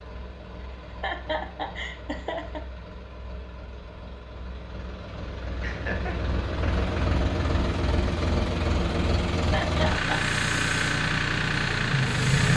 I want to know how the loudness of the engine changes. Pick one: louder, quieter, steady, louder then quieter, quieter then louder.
louder.